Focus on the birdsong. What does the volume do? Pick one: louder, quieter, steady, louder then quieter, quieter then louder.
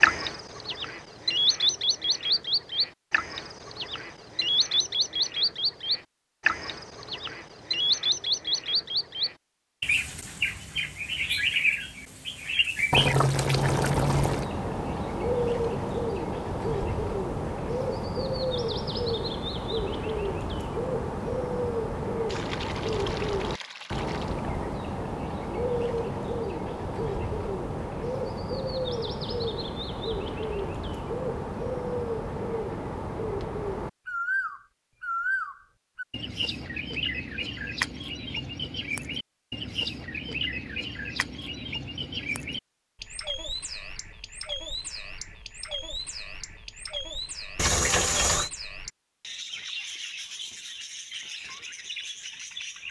quieter.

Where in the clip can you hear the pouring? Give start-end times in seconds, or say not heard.
12.9-14.5, 22.2-24.4, 47.5-48.5.